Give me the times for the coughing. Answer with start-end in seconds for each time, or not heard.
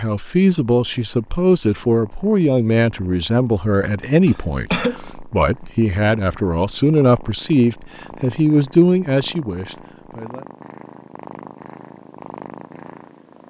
4.0-5.0.